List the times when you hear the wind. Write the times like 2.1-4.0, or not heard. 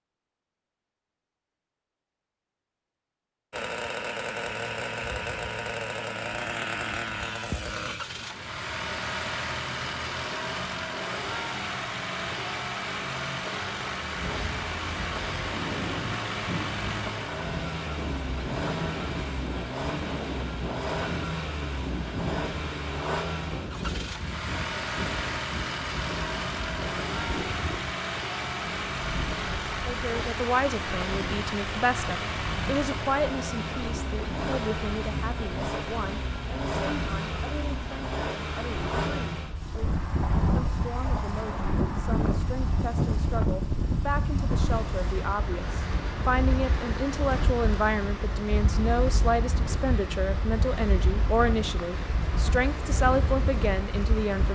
14.1-54.5.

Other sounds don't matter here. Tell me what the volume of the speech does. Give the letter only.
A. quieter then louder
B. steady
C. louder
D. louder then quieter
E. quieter
A.